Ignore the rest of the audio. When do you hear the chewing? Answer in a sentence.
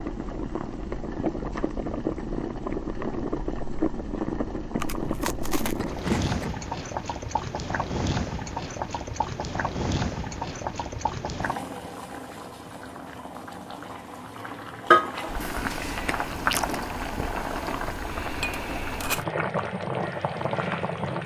The chewing can be heard from 4.8 to 6.5 s and from 15.4 to 16.8 s.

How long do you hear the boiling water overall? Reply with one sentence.
The boiling water can be heard for 21 seconds in total.